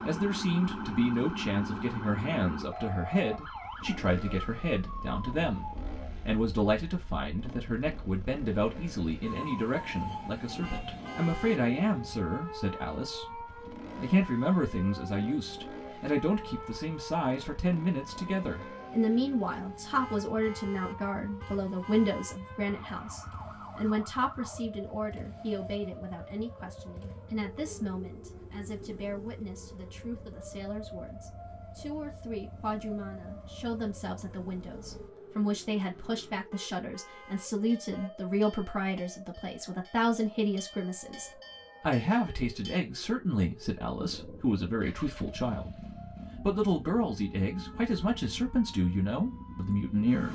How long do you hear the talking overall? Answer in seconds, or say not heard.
50 s.